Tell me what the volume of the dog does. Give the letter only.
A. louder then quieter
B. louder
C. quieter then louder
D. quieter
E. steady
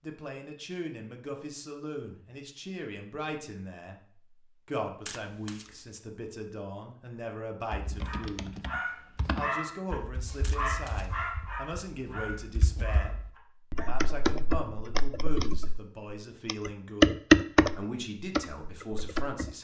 D.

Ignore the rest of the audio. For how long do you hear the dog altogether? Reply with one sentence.
You can hear the dog for 6 seconds altogether.